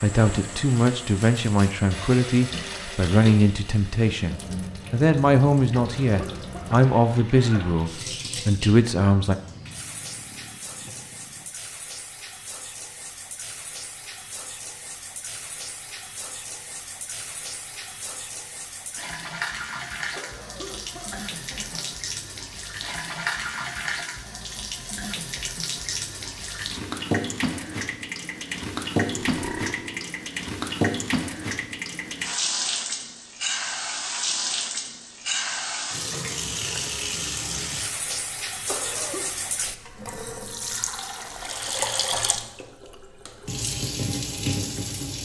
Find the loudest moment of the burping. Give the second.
30 s.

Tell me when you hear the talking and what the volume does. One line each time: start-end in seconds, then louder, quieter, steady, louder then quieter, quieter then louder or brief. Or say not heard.
0.0-9.3 steady.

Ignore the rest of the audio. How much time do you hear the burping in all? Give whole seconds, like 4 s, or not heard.
3 s.